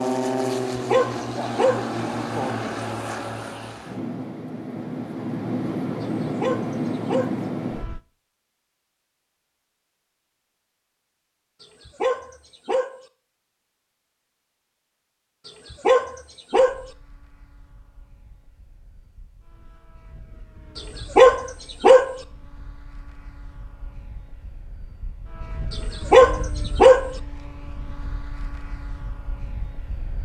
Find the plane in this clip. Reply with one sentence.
The plane can be heard from 0.0 to 8.0 s and from 16.5 to 30.2 s.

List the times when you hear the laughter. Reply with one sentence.
You can't hear the laughter here.